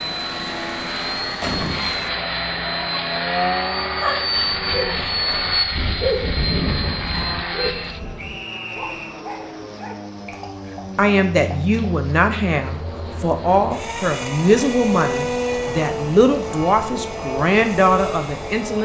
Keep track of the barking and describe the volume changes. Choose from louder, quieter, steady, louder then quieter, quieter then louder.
louder then quieter.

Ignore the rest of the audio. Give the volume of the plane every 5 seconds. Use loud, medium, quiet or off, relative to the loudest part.
loud, loud, medium, loud.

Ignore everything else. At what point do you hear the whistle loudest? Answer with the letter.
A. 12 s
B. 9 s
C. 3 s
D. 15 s
B.